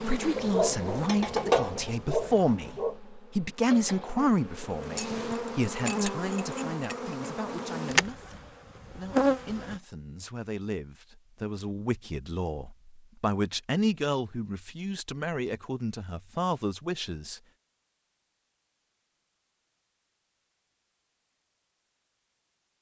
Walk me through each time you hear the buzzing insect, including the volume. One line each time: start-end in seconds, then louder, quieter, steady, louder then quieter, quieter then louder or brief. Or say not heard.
0.0-9.8 quieter then louder.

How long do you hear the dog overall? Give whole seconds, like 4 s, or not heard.
3 s.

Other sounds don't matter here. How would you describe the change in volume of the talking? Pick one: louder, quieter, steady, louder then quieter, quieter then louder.
quieter then louder.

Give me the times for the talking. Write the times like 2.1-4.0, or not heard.
0.0-17.4.